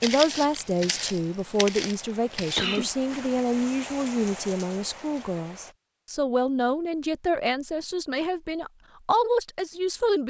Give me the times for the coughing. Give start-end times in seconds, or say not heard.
2.5-3.0.